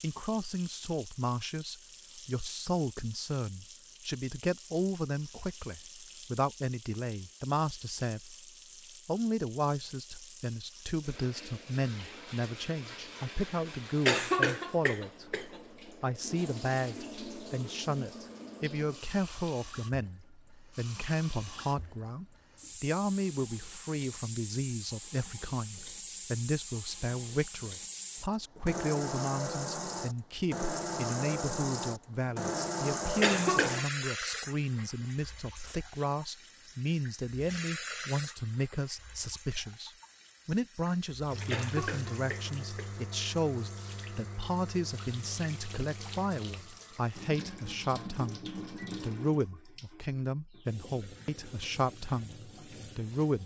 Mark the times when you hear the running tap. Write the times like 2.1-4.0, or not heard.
0.0-53.4.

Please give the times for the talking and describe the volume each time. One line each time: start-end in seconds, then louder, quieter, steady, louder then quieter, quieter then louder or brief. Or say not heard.
0.0-8.3 steady
9.1-53.4 steady.